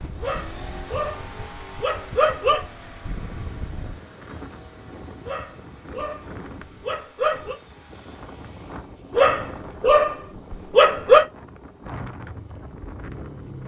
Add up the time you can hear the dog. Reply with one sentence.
The dog can be heard for 7 seconds in total.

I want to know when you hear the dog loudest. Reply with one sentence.
The loudest moment of the dog is at 11 seconds.